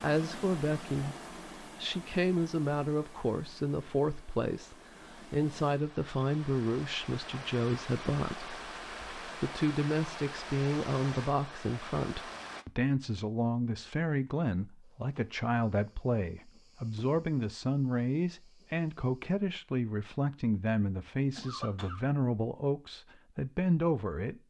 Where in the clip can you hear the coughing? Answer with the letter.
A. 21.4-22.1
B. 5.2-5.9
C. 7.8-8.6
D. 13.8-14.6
A.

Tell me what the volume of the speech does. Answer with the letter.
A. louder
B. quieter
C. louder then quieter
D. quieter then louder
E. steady
E.